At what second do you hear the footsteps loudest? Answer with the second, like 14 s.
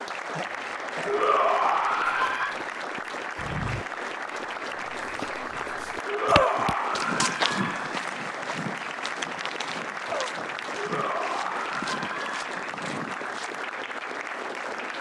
7 s.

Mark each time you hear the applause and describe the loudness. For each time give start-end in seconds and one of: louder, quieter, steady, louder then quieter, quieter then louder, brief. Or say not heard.
0.0-14.9 steady.